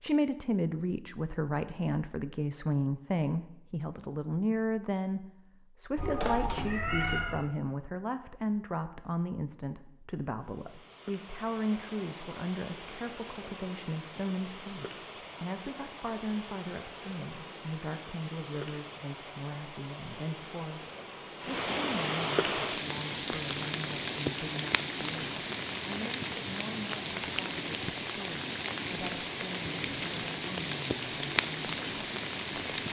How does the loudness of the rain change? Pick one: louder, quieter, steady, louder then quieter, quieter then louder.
louder.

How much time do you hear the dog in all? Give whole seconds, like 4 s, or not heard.
not heard.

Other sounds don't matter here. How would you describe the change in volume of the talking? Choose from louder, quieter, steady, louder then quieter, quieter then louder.
quieter.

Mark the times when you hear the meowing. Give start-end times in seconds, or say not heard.
6.0-7.5.